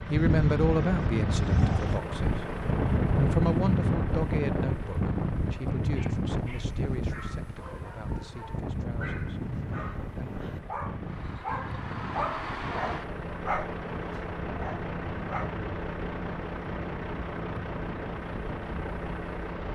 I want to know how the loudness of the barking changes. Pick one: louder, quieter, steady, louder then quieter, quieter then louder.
louder.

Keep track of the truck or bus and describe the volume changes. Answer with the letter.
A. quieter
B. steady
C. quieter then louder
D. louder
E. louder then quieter
C.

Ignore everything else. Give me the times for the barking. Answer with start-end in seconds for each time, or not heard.
5.8-15.6.